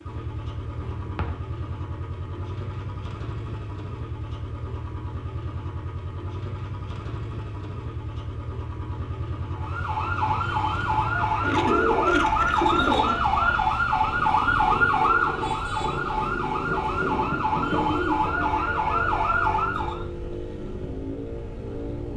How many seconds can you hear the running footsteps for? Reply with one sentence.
You can't hear the running footsteps here.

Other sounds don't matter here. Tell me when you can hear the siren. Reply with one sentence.
The siren can be heard from 9.6 to 20.0 s.